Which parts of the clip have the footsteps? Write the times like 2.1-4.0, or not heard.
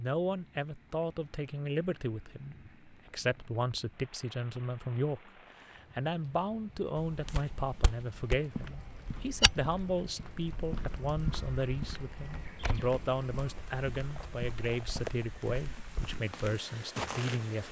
7.0-17.4.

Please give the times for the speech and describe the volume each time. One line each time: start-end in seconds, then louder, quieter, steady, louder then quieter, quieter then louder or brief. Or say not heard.
0.0-17.6 steady.